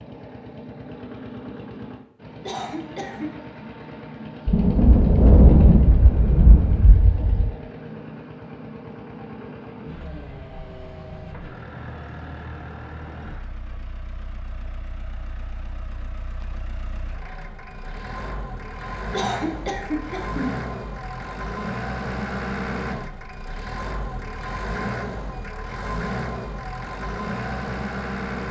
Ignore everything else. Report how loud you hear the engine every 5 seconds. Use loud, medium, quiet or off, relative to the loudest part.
medium, medium, medium, medium, loud, loud.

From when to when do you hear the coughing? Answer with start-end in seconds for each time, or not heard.
2.5-3.3, 19.1-20.6.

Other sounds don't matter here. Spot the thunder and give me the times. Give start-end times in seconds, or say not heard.
4.5-7.5.